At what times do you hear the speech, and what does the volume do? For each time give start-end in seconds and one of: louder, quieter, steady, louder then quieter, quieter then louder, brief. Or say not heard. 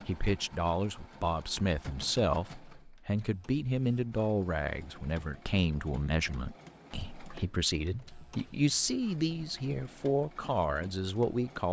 0.1-11.6 steady.